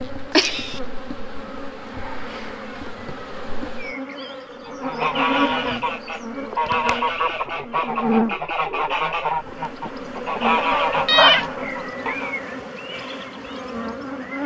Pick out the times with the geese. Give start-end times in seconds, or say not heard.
4.7-12.3.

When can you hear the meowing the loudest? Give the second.
11 s.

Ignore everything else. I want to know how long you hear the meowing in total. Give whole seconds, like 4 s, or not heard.
2 s.